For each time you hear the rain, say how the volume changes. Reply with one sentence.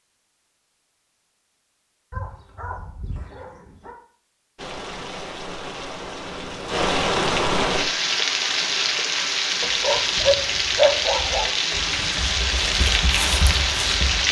The rain can be heard from 4.5 to 14.2 s, getting louder.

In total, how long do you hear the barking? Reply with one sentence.
You can hear the barking for 4 seconds altogether.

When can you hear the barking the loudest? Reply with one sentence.
The loudest moment of the barking is at 11 seconds.